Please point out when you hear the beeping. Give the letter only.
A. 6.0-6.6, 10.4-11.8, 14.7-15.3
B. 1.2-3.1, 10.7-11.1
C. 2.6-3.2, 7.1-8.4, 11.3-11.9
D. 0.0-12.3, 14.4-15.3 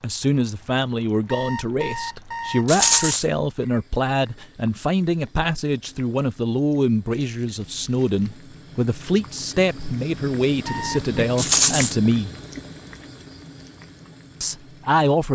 B.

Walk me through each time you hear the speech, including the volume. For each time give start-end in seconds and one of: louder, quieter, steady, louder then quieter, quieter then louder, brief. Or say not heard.
0.0-12.3 steady
14.4-15.3 brief.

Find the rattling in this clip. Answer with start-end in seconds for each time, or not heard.
2.6-3.2, 7.1-8.4, 11.3-11.9.